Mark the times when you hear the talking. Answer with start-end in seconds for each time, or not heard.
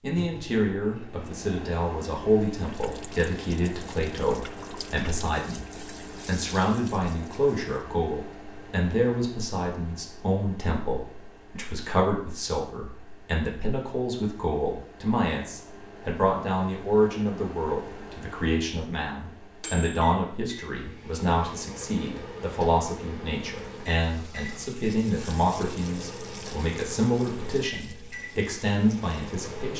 0.0-5.7, 6.2-29.7.